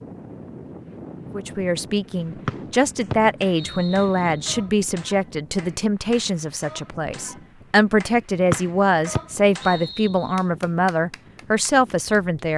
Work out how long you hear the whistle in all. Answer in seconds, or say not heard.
4 s.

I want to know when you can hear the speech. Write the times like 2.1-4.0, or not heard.
1.3-12.5.